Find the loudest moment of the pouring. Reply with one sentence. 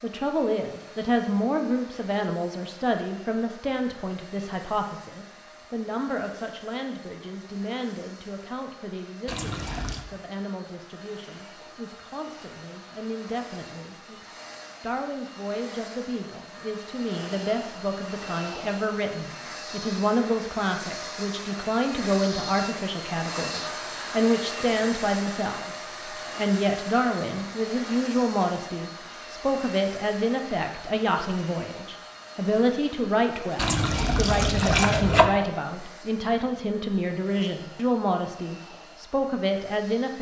The volume of the pouring peaks at 35 seconds.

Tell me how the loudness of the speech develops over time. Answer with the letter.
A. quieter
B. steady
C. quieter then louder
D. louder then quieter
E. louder
C.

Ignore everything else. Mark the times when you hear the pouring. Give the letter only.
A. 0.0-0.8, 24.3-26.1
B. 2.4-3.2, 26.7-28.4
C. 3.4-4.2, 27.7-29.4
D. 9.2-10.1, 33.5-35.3
D.